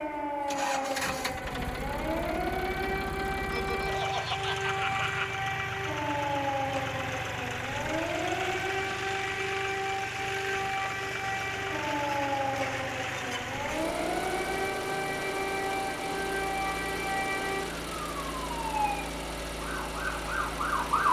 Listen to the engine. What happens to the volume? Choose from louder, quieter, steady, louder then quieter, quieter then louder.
steady.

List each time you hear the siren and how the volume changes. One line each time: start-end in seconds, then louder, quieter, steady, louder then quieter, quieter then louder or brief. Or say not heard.
0.0-21.0 steady.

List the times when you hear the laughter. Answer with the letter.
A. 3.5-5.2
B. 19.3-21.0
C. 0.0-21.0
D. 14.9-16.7
A.